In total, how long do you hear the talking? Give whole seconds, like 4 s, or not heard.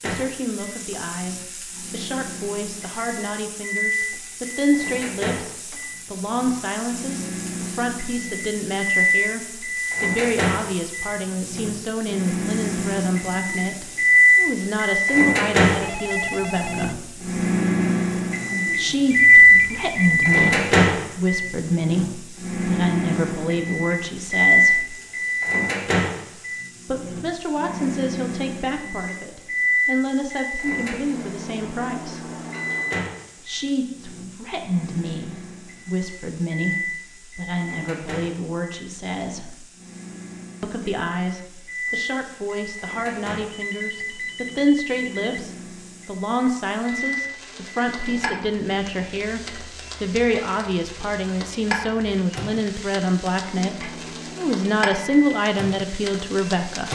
51 s.